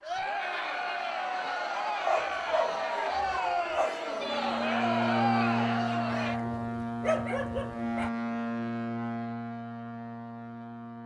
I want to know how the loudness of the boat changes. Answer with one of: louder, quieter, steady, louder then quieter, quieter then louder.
quieter.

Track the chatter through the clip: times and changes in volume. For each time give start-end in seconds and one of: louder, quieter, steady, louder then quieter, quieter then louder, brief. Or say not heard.
0.0-6.4 steady.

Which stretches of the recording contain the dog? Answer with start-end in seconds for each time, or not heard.
2.0-3.9, 6.2-8.1.